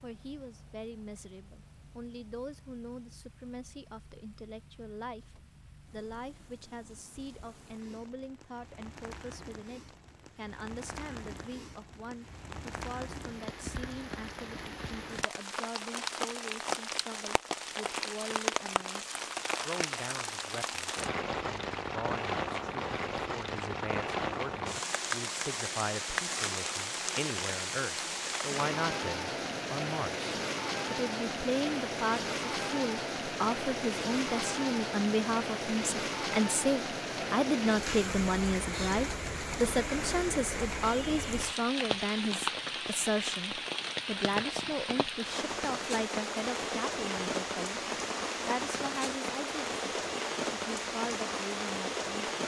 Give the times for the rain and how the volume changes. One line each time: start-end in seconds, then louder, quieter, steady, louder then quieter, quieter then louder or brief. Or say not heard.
0.0-52.4 louder.